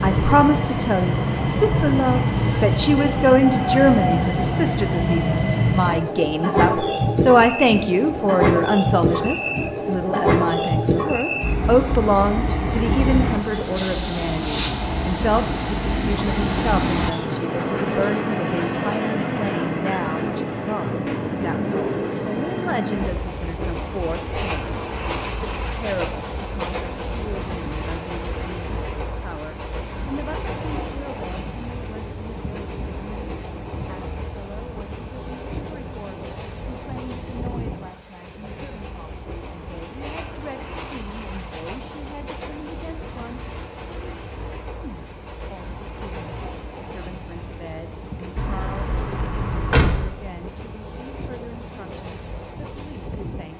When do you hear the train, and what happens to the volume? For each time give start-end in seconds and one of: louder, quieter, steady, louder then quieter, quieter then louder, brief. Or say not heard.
0.0-53.5 quieter.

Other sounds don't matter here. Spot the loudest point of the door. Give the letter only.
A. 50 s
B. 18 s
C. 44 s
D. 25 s
A.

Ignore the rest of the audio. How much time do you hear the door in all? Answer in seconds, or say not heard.
2 s.